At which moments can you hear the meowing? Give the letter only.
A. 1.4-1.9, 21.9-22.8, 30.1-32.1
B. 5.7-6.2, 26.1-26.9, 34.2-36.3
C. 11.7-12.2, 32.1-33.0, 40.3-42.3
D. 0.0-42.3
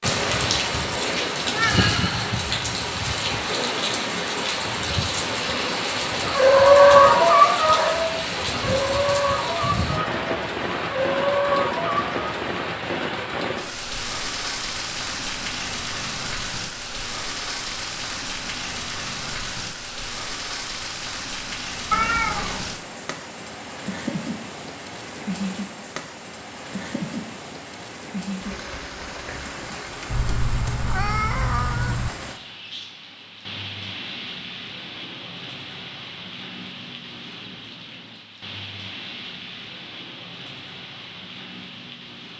A.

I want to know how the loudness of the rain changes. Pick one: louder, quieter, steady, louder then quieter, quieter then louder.
quieter.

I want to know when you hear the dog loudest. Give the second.
7 s.